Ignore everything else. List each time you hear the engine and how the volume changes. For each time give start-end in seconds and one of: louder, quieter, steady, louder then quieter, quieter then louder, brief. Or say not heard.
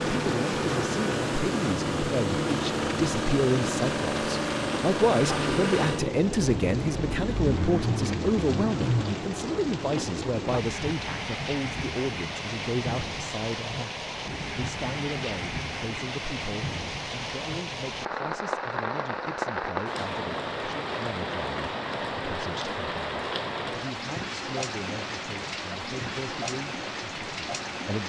0.0-9.2 steady.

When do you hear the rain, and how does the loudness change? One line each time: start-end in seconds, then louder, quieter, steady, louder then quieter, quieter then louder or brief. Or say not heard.
0.0-28.0 steady.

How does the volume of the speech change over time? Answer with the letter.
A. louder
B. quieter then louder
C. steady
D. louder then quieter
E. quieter
E.